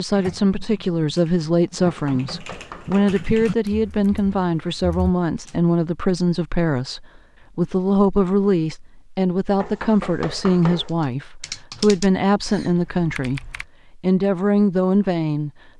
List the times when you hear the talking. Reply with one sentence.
The talking can be heard from 0.0 to 15.5 s.